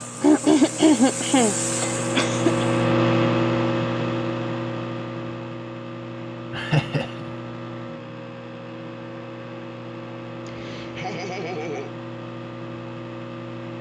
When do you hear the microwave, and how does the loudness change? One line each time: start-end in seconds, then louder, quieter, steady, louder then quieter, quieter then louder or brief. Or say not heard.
0.0-13.7 quieter.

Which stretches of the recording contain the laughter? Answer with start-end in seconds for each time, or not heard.
0.2-2.6, 6.5-7.3, 10.4-11.9.